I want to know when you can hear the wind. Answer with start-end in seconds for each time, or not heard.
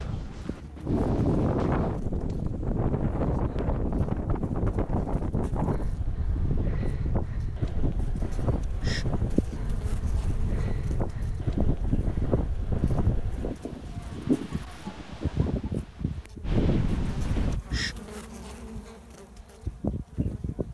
0.0-17.6.